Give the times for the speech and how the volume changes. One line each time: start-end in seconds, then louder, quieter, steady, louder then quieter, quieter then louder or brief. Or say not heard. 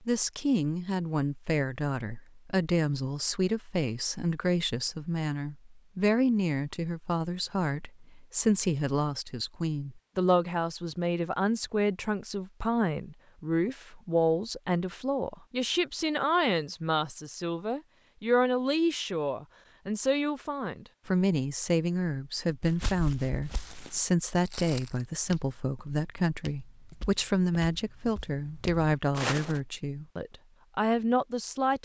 0.0-31.8 steady.